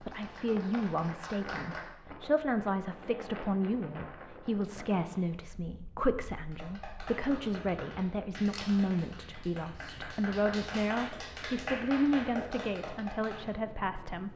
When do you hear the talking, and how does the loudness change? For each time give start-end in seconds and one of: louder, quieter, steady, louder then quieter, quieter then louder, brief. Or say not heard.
0.0-14.3 steady.